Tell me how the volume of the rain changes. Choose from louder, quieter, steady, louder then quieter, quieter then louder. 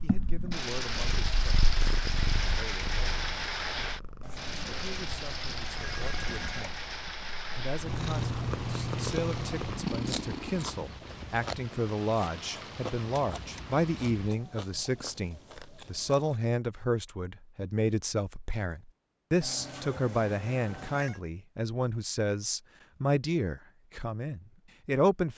quieter.